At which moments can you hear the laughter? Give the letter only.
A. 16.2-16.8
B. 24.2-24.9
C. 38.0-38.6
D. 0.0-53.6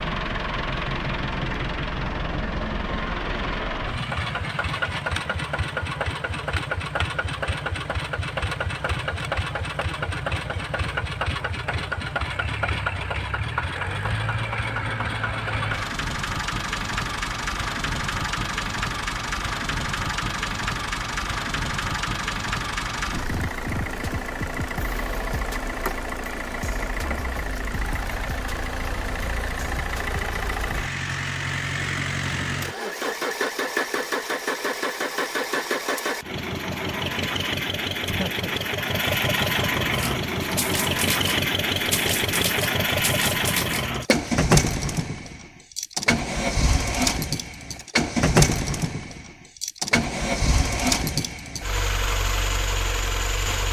C.